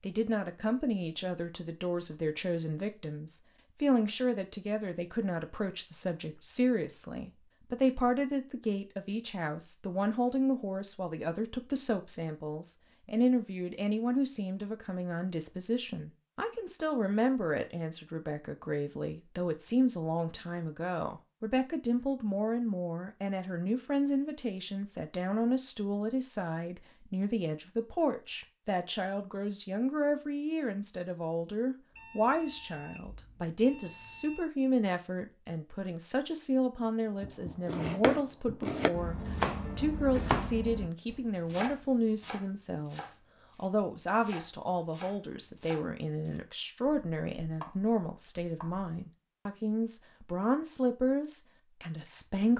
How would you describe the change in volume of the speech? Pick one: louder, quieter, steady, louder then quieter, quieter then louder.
steady.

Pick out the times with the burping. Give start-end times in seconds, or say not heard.
not heard.